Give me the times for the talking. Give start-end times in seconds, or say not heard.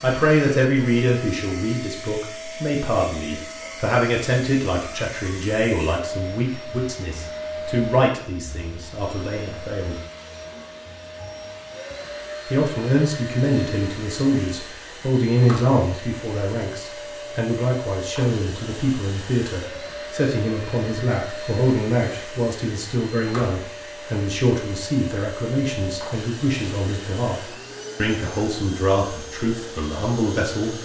0.0-9.9, 12.4-30.8.